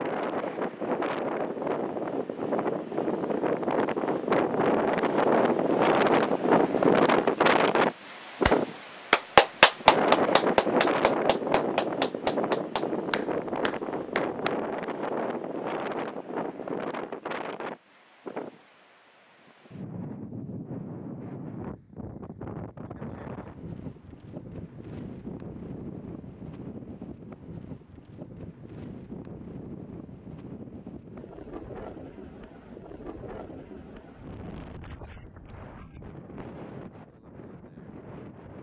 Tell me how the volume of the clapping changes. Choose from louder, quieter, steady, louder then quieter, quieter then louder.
quieter.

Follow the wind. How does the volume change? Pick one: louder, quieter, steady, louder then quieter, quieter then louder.
quieter.